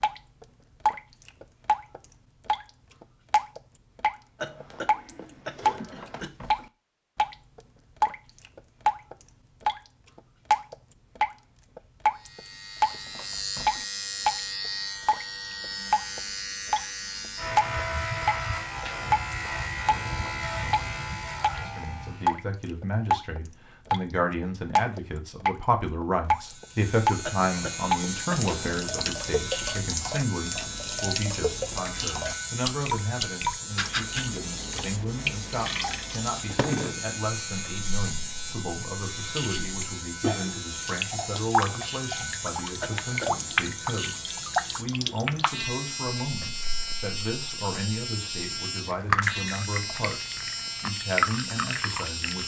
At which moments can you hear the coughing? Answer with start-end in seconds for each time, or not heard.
4.3-6.3, 27.2-29.1, 42.8-43.5.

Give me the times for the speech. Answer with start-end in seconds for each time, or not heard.
21.6-52.4.